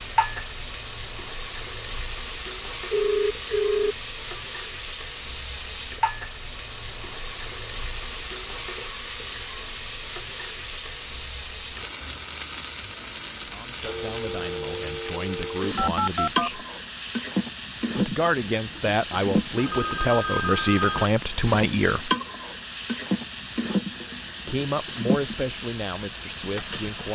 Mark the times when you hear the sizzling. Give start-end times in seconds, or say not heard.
0.0-27.1.